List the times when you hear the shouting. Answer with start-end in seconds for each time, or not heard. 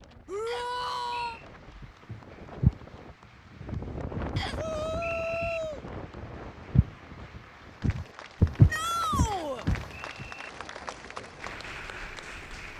0.2-1.4, 4.5-5.8, 8.7-9.7.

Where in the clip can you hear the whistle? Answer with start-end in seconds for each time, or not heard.
0.5-1.4, 4.3-5.6, 9.2-10.5.